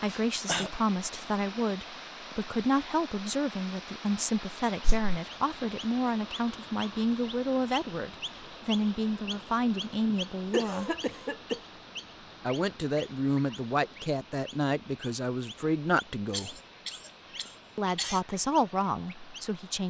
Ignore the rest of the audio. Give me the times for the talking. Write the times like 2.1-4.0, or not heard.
0.0-10.9, 12.4-16.6, 17.8-19.8.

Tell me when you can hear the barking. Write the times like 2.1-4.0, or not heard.
not heard.